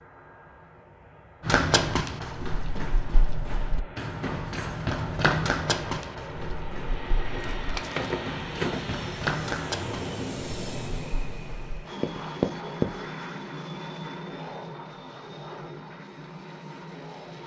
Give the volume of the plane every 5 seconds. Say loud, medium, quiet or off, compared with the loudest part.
medium, loud, loud, medium.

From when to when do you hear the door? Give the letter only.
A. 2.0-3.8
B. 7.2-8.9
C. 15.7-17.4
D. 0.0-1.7
B.